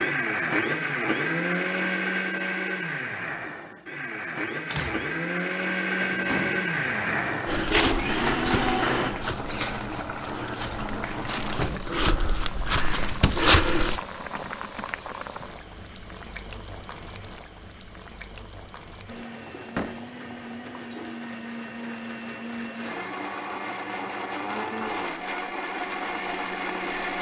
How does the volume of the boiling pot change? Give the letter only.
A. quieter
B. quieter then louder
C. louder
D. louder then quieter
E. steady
A.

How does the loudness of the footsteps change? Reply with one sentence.
The volume of the footsteps goes down, then up.